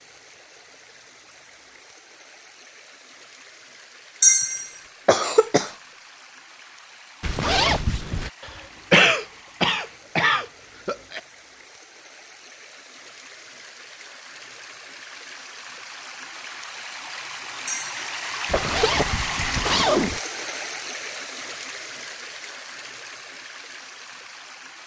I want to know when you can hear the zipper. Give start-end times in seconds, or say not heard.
7.2-8.3, 18.4-20.2.